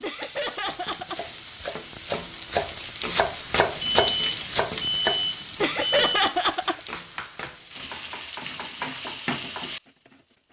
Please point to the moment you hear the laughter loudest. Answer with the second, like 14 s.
6 s.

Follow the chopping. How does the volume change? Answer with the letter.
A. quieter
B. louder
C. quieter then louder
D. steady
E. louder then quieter
E.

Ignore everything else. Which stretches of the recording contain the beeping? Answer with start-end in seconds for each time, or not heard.
3.8-6.3.